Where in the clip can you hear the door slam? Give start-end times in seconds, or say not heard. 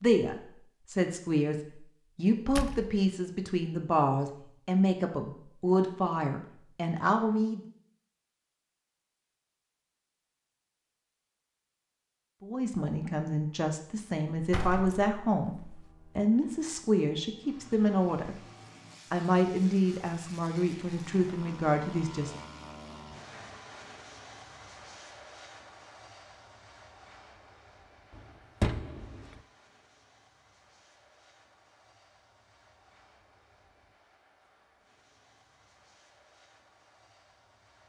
2.5-3.0, 14.3-15.8, 28.1-29.4.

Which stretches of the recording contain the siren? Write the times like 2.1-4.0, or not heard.
not heard.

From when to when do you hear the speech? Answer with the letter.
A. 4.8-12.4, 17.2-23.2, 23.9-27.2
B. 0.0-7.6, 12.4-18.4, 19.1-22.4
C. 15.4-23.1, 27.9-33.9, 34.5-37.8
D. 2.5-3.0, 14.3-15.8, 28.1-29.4
B.